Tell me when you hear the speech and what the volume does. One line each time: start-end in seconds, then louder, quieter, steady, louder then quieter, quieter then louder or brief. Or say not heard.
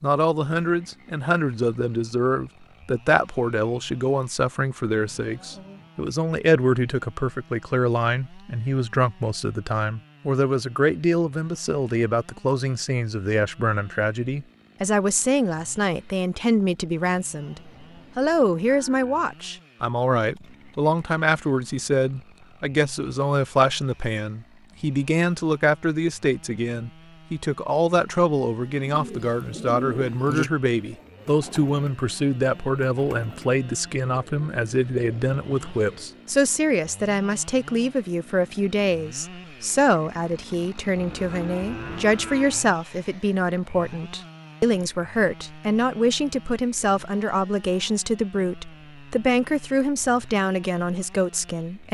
0.0-51.8 steady.